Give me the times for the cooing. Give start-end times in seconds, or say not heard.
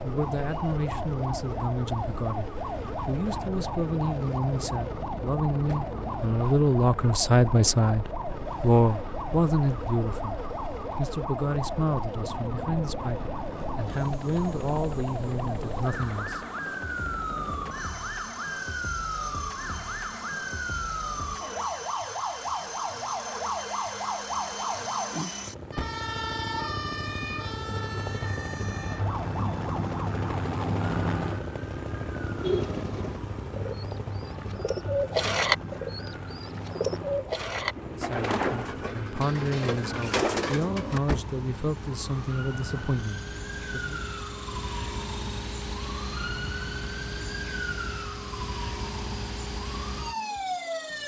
32.4-41.0.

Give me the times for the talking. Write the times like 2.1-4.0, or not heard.
0.0-16.4, 37.9-44.0.